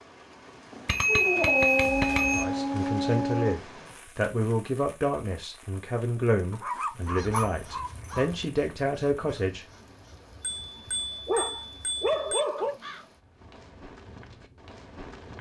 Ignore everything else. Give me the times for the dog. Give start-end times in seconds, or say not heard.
1.1-3.6, 6.5-8.3, 11.2-12.8.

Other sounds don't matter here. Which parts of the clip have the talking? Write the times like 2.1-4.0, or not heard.
2.4-9.7.